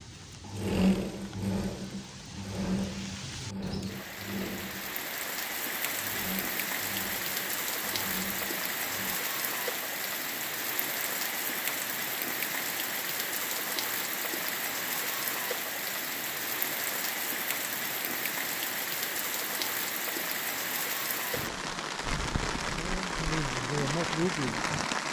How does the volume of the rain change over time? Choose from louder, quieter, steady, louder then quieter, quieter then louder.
louder.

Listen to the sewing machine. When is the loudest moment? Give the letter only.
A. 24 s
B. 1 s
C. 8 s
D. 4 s
B.